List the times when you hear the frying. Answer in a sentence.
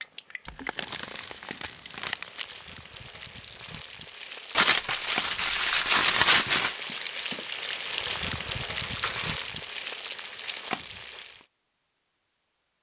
The frying can be heard from 0.0 to 11.4 s.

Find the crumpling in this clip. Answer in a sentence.
You can hear the crumpling from 0.5 to 2.5 s, from 4.5 to 6.8 s and from 8.8 to 9.7 s.